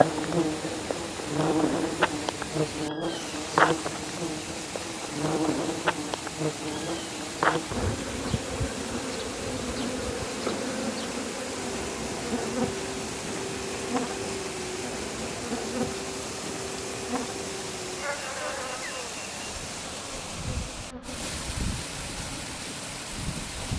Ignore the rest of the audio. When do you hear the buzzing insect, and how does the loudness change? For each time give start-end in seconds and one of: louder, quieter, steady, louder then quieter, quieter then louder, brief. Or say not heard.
0.0-23.7 quieter.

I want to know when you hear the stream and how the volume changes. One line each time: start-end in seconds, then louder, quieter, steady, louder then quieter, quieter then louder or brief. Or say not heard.
0.0-23.7 steady.